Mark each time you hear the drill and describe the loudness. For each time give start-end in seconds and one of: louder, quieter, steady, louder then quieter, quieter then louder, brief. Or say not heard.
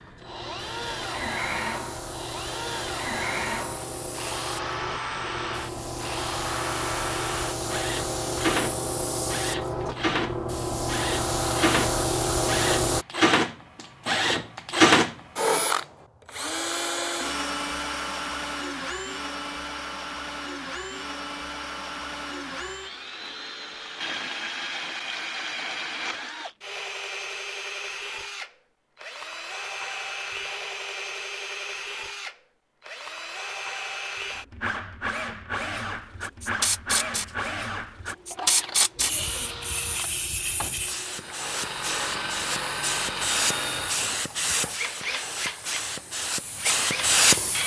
0.0-47.6 louder then quieter.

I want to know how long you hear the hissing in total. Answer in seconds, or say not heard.
25 s.